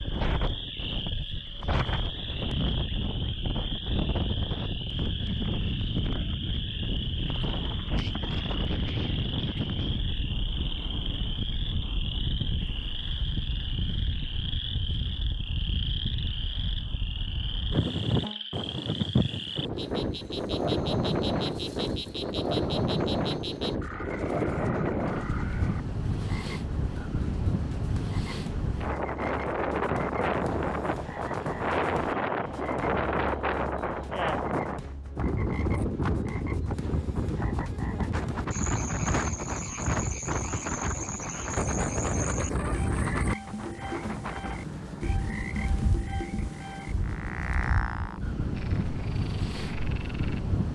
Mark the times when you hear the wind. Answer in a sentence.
The wind can be heard from 0.0 to 50.7 s.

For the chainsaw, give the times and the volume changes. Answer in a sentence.
The chainsaw can't be heard in this clip.